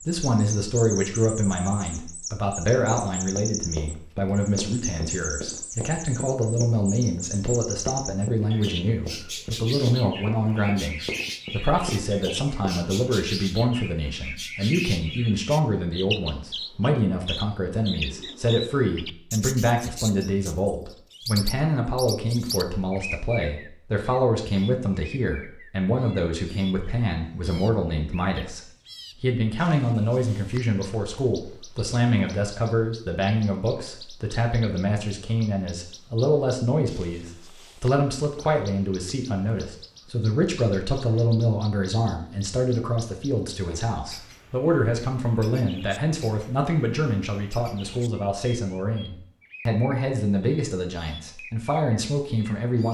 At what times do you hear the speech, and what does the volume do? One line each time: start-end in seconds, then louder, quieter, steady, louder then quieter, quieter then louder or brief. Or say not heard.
0.1-28.6 steady
29.2-52.8 steady.